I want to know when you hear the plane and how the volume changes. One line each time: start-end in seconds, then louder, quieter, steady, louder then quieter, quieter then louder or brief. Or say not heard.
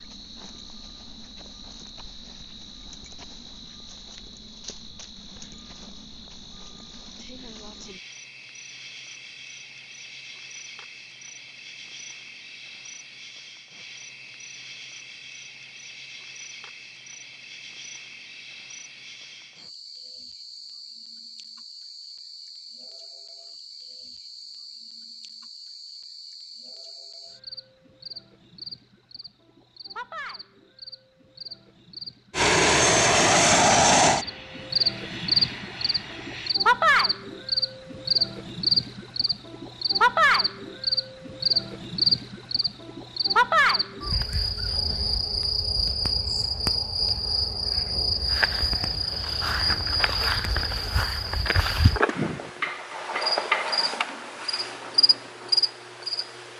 32.3-36.5 quieter.